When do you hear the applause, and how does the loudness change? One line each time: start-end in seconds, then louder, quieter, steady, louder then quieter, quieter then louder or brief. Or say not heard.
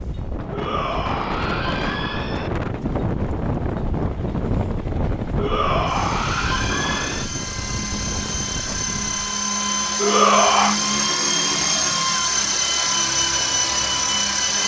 not heard.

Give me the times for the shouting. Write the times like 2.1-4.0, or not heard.
0.5-2.5, 5.3-7.2, 9.9-10.8.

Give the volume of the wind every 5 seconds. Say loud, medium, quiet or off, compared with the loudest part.
loud, loud, off.